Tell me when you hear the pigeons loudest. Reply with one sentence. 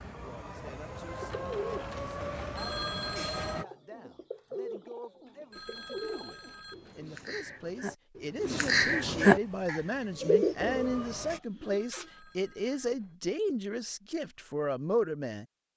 The loudest moment of the pigeons is at 9 seconds.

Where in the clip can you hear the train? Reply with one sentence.
The train can be heard from 0.0 to 3.6 s and from 9.3 to 11.4 s.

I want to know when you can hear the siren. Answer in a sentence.
The siren can't be heard in this clip.